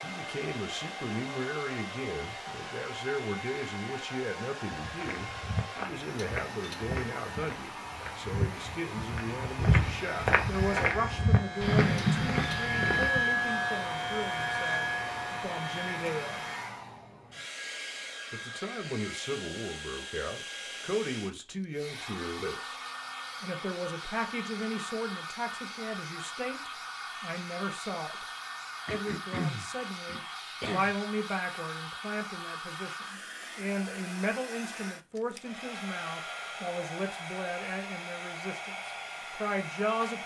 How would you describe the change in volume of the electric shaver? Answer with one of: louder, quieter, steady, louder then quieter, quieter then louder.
louder then quieter.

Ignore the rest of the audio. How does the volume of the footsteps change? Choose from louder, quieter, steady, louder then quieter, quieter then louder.
louder.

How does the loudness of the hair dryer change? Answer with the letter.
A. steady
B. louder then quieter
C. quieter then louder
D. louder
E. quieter
A.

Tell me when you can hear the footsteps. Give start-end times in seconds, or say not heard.
4.8-13.1.